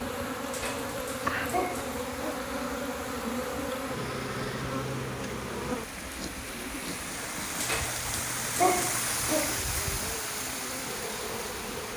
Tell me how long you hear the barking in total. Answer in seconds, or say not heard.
4 s.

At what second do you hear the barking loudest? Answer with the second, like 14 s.
9 s.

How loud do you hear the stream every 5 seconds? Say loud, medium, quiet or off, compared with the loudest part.
medium, loud, loud.